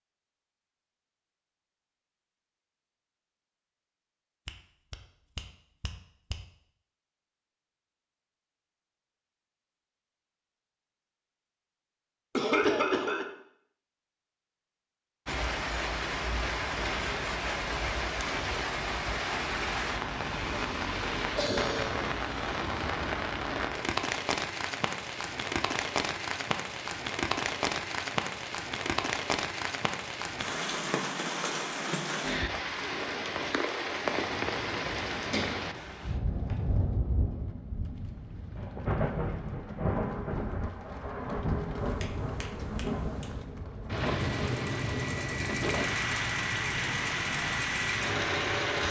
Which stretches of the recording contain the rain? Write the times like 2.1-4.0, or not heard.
15.2-48.8.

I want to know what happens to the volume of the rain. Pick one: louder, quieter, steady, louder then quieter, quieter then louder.
steady.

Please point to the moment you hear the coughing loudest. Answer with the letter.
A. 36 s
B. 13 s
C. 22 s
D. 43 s
B.